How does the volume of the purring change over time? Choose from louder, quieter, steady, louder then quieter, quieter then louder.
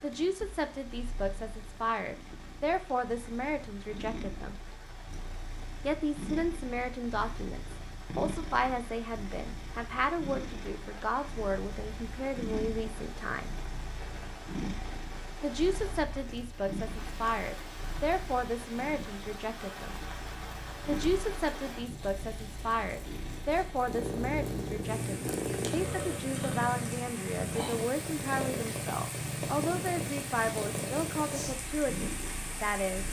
louder.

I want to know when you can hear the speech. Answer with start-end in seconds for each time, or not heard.
0.0-4.5, 5.8-13.5, 15.4-19.9, 20.9-33.0.